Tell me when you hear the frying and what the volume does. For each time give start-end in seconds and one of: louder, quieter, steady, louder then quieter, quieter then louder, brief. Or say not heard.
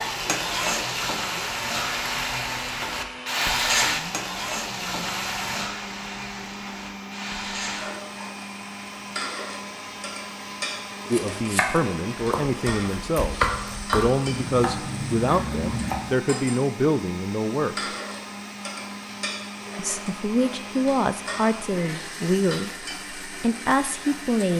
0.0-24.5 quieter.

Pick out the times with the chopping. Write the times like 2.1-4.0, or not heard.
11.1-16.1.